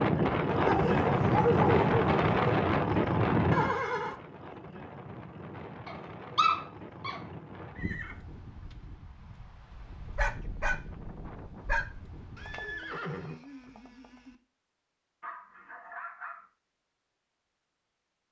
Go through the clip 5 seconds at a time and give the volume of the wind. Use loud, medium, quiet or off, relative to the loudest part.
loud, quiet, quiet, off.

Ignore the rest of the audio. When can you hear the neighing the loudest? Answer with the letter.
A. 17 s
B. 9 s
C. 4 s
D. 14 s
C.